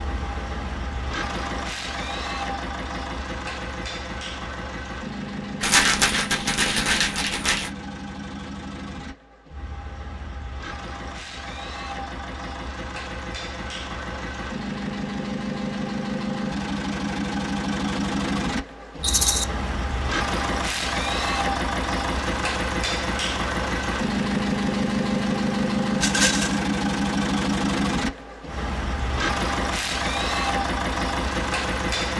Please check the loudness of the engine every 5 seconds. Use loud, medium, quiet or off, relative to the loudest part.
medium, medium, medium, loud, loud, loud, loud.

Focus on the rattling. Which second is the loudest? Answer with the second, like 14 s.
6 s.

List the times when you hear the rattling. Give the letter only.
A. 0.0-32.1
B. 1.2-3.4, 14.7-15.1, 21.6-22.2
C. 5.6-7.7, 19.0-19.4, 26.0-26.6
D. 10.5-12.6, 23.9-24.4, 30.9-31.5
C.